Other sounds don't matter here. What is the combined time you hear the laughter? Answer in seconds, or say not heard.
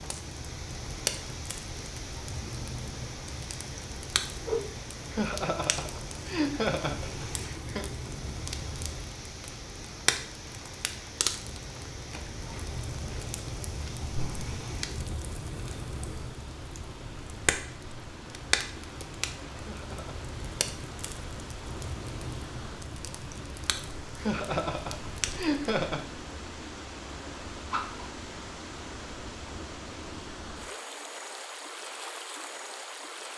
5 s.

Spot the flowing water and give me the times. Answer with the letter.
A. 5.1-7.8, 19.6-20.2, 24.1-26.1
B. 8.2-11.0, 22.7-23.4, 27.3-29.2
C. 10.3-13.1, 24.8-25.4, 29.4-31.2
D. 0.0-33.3
D.